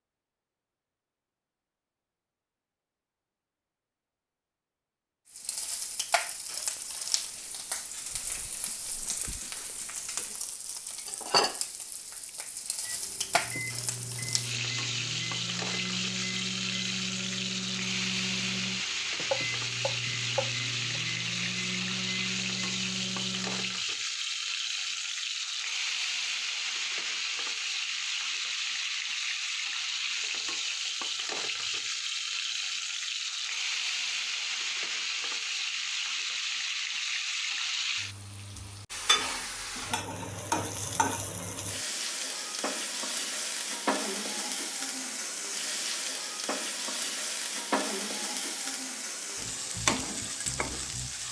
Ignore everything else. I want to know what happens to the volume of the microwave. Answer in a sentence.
The volume of the microwave stays about the same.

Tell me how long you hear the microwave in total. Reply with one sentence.
The microwave can be heard for 11 seconds in total.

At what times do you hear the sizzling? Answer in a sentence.
The sizzling can be heard from 5.2 to 51.2 s.